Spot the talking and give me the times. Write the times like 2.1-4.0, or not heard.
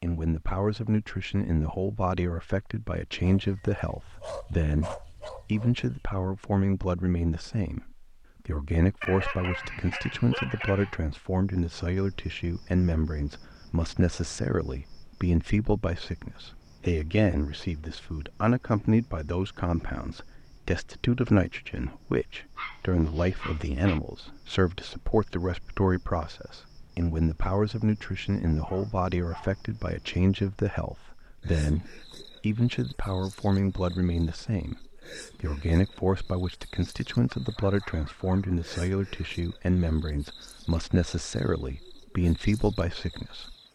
0.0-43.5.